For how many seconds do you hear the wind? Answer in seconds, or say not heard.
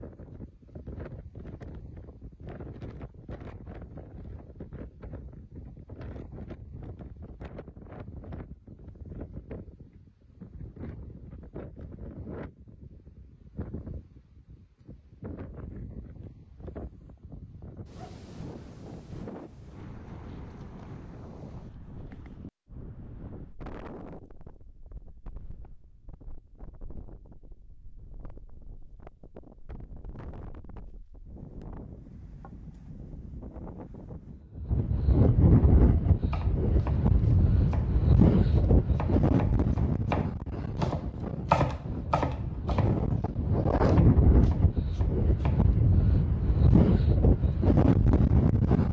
49 s.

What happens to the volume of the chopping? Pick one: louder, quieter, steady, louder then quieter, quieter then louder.
louder then quieter.